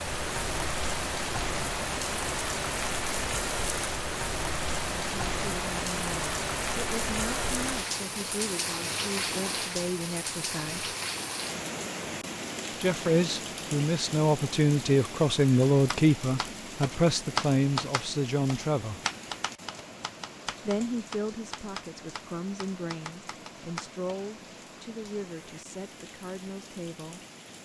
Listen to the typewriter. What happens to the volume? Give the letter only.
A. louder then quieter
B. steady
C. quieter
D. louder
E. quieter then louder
C.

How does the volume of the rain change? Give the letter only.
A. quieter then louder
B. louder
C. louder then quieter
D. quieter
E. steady
D.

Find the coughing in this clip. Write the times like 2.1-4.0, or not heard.
not heard.